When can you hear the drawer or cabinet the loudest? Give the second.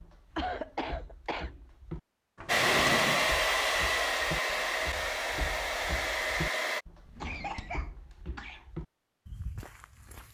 3 s.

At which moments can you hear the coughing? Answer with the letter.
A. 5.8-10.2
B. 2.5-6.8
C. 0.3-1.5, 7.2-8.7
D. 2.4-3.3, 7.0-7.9
C.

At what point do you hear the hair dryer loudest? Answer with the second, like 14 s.
3 s.